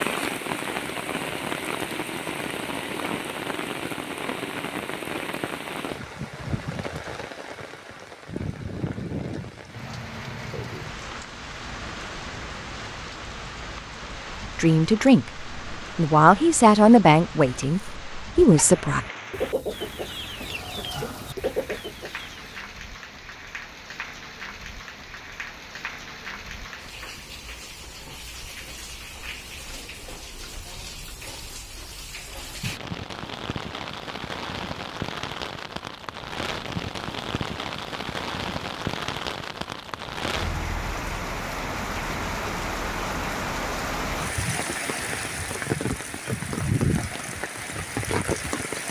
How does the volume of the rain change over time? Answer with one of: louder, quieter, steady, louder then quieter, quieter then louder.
quieter then louder.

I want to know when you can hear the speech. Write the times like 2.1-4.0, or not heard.
14.6-19.0.